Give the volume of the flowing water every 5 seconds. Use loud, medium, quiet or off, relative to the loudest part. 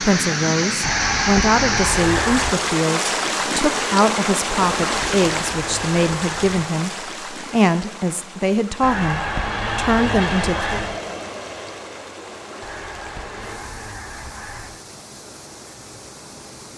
loud, medium, quiet, quiet.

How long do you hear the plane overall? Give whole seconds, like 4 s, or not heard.
5 s.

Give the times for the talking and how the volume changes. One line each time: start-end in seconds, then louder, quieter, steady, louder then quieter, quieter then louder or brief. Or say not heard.
0.0-10.8 steady.